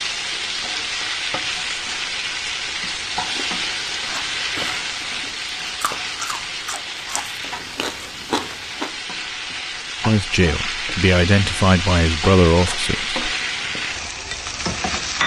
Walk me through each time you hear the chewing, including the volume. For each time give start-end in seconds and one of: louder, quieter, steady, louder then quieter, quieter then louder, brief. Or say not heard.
3.1-9.0 louder.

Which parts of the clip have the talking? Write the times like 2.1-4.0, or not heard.
10.1-13.2.